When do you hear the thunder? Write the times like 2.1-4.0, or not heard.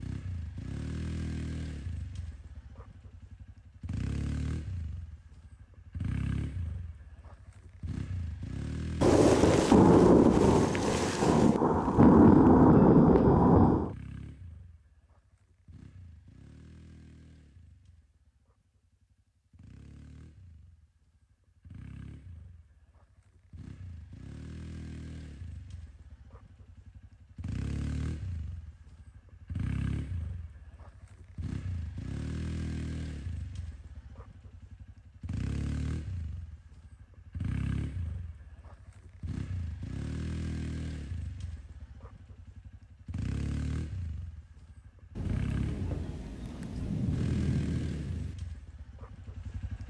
9.0-13.9, 45.1-48.4.